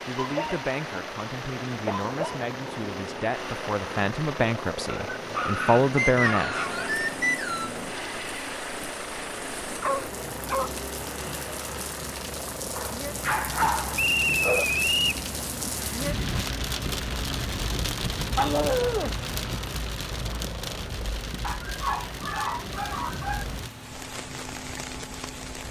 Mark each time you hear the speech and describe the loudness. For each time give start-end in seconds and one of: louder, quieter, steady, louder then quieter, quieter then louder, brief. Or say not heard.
0.1-6.7 louder.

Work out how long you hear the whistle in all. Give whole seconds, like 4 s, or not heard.
3 s.